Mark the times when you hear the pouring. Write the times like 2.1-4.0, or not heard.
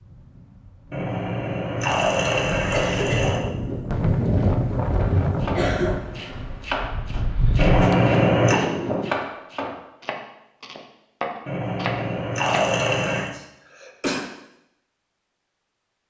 0.9-3.4, 7.5-8.6, 11.4-13.3.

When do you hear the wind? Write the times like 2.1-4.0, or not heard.
0.0-9.2.